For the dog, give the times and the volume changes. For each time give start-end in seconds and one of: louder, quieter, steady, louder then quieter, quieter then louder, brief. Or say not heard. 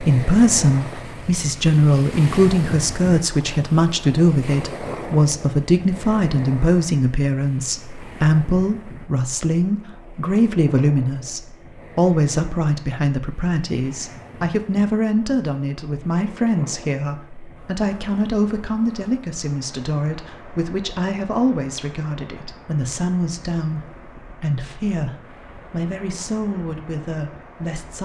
not heard.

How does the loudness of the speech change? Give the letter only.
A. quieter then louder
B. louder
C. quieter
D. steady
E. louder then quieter
C.